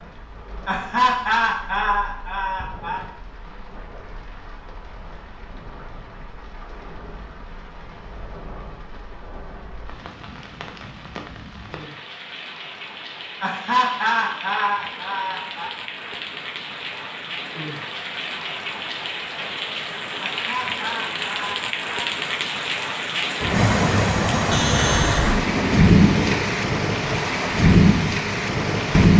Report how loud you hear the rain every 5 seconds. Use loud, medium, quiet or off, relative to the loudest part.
quiet, quiet, quiet, quiet, medium, loud.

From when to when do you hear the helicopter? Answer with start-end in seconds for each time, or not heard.
23.4-26.4.